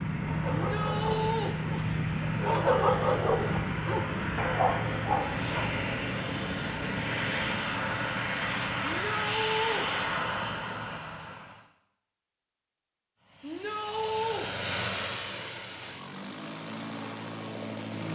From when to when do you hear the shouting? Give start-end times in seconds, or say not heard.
0.5-1.6, 8.8-9.9, 13.4-14.5.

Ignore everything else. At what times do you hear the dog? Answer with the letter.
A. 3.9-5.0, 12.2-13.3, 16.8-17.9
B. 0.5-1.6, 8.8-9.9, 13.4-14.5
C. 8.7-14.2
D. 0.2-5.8
D.